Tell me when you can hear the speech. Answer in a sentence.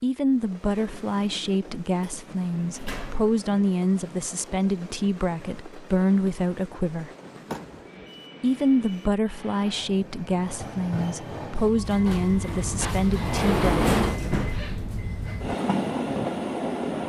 You can hear the speech from 0.0 to 7.1 s and from 8.4 to 13.9 s.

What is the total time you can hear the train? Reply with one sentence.
You can hear the train for 17 seconds altogether.